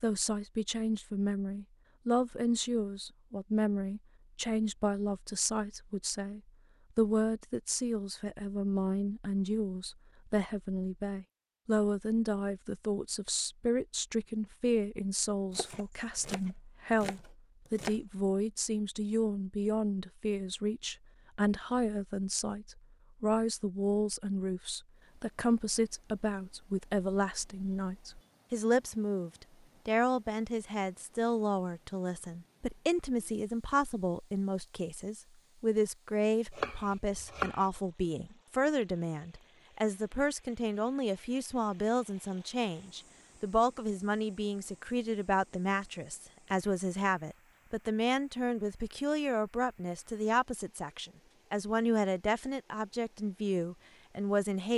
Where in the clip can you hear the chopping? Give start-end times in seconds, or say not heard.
15.6-18.0, 36.5-37.6.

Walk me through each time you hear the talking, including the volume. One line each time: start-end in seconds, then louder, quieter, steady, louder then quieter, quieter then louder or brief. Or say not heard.
0.0-54.7 steady.